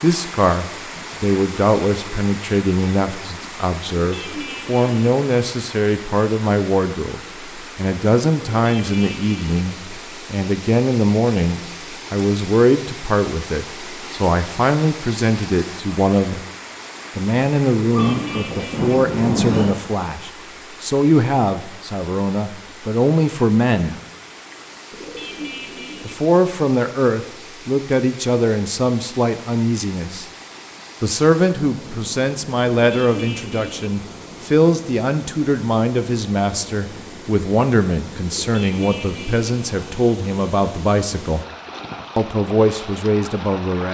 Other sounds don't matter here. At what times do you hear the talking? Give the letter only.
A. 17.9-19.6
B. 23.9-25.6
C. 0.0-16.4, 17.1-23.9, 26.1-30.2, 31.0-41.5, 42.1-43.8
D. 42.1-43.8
C.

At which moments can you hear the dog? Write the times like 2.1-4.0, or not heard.
17.9-19.6.